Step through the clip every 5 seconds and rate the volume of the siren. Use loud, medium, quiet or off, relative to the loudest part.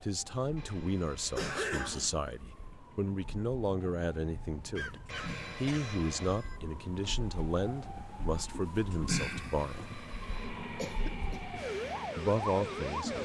quiet, loud, loud.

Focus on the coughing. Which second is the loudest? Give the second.
2 s.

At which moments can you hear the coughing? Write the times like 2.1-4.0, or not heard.
1.4-2.1, 4.8-6.0, 10.8-11.6.